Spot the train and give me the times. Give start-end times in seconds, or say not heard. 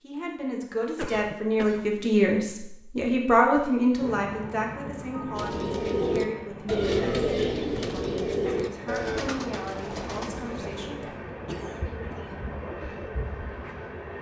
4.0-14.1.